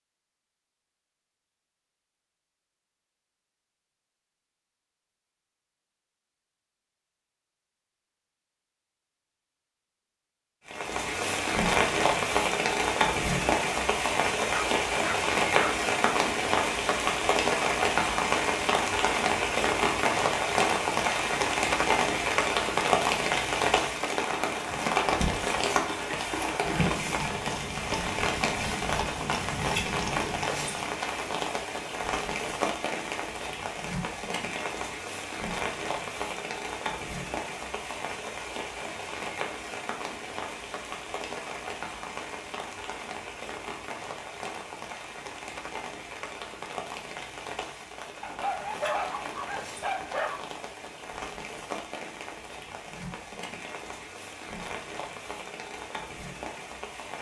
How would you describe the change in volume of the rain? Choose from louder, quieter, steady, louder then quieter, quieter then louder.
quieter.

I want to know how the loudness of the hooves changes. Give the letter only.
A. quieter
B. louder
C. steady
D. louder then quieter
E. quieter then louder
C.